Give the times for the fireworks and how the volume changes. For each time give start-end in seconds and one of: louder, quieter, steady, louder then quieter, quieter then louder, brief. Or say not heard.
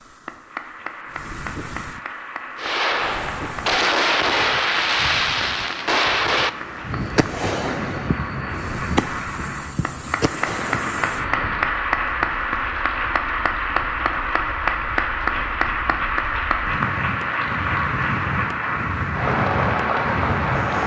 2.5-11.8 quieter.